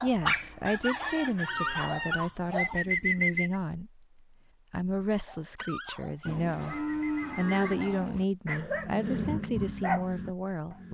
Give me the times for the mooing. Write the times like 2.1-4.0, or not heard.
0.4-2.2, 6.2-8.2.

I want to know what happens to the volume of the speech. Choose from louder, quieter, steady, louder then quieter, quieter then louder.
steady.